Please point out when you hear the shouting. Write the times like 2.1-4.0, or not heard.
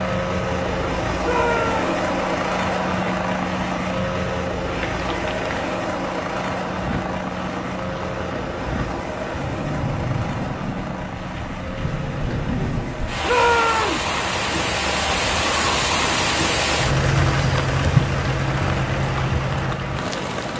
1.2-1.9, 13.2-14.1.